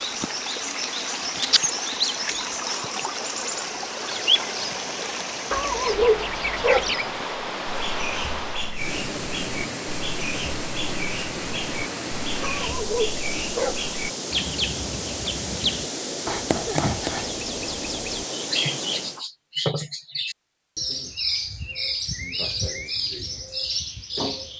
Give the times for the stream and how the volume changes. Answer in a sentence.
You can hear the stream from 0.0 to 19.2 s, at a steady volume.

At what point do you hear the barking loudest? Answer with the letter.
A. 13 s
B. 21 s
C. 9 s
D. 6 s
D.